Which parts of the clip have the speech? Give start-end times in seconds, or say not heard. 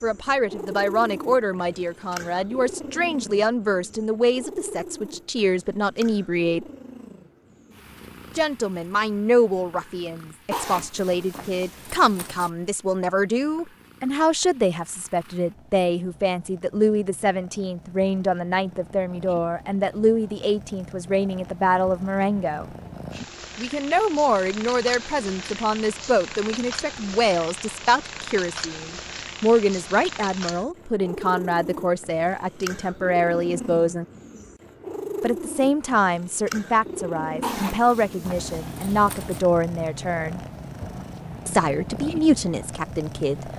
0.0-6.7, 8.3-22.6, 23.6-34.0, 35.2-40.4, 41.5-43.5.